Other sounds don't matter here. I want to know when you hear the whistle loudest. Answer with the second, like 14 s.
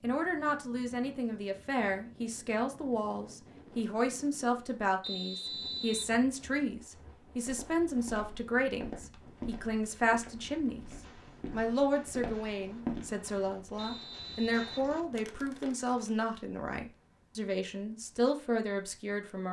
6 s.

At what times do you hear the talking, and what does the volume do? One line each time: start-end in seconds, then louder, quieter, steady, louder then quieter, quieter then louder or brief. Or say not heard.
0.0-10.8 steady
11.5-19.4 steady.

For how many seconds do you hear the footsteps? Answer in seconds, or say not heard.
6 s.